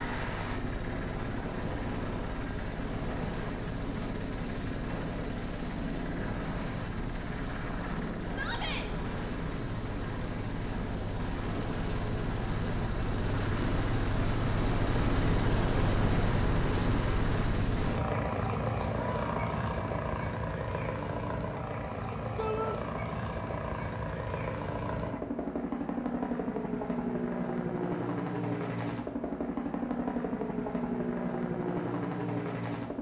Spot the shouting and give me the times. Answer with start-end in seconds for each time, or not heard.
8.2-8.8, 18.9-19.7, 22.4-22.8.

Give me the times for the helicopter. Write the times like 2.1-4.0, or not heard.
0.0-32.9.